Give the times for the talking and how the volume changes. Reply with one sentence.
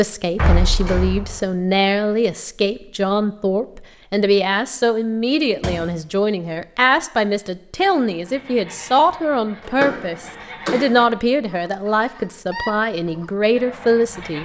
The talking can be heard from 0.0 to 14.4 s, at a steady volume.